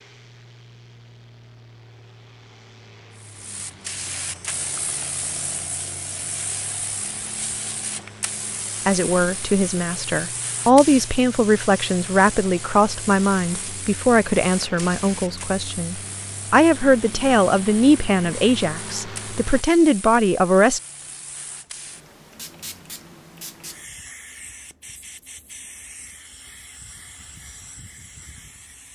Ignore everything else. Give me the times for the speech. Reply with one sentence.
You can hear the speech from 8.8 to 20.8 s.